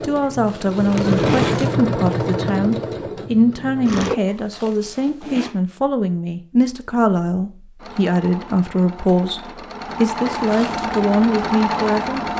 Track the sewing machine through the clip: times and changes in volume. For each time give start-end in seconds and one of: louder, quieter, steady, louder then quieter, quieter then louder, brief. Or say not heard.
0.0-4.2 louder then quieter
7.8-12.3 louder.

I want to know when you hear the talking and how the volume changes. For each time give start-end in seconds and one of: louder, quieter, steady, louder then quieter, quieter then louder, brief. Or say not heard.
0.0-12.3 steady.